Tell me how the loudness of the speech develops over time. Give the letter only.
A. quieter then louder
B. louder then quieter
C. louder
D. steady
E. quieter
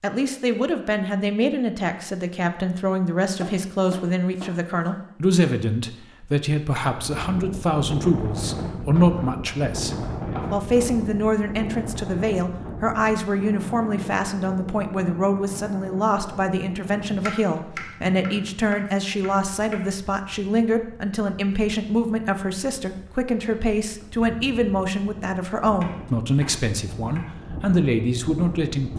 D.